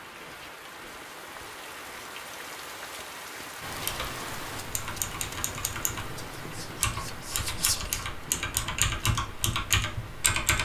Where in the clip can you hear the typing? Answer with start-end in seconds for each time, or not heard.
3.6-10.6.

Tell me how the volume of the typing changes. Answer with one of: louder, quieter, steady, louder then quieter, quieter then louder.
louder.